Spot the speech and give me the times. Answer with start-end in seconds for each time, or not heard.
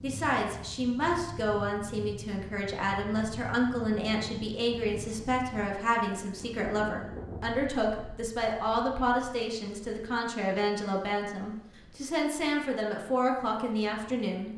0.0-14.5.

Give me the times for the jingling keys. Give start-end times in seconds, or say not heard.
not heard.